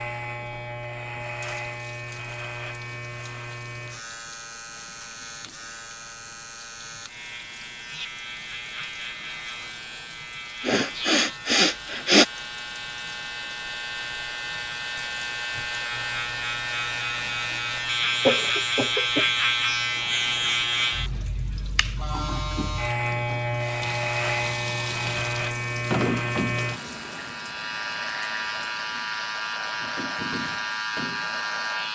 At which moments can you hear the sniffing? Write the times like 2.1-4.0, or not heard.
10.7-12.2, 18.2-19.2.